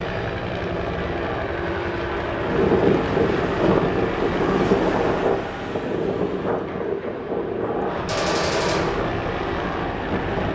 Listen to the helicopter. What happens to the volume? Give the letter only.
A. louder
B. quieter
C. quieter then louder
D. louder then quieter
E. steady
C.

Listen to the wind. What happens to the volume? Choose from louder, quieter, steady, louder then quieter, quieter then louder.
quieter.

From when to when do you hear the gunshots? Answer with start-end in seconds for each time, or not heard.
8.1-9.1.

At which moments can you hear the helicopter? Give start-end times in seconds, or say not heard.
0.0-10.5.